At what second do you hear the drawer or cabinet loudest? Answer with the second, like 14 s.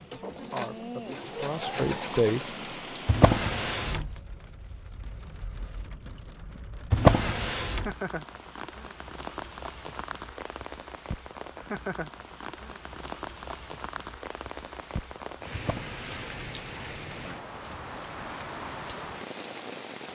7 s.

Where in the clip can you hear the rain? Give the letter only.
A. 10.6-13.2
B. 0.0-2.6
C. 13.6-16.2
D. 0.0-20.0
D.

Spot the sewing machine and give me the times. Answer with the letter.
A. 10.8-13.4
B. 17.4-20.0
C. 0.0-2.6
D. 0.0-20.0
C.